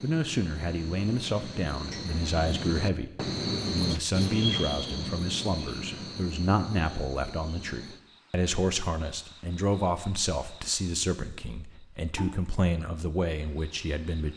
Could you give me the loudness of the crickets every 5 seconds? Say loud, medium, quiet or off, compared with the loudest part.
loud, medium, quiet.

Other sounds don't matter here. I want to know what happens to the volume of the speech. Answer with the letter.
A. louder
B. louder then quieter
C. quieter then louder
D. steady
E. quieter
D.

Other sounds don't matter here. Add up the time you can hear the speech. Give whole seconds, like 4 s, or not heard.
14 s.